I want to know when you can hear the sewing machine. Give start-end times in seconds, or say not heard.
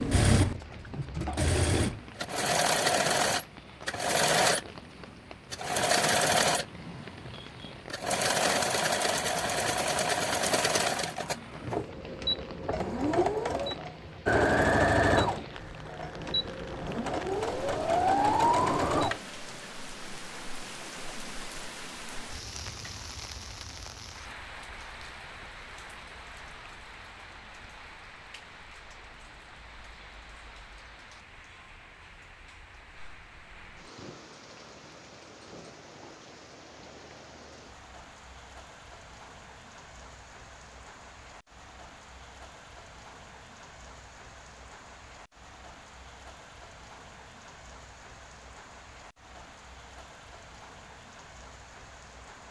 0.0-19.2.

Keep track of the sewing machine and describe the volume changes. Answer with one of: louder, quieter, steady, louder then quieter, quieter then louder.
steady.